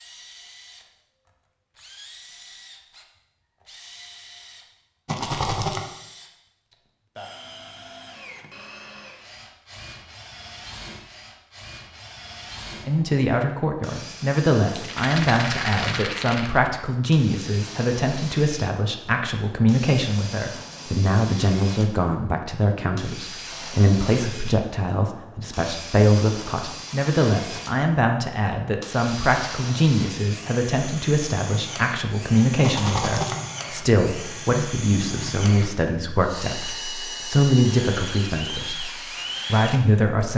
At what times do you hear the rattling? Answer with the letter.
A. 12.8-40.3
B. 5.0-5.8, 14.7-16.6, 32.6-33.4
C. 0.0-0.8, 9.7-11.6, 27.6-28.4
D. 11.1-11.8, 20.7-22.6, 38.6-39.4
B.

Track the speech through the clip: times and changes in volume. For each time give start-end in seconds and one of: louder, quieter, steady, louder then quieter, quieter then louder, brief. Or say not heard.
12.8-40.3 steady.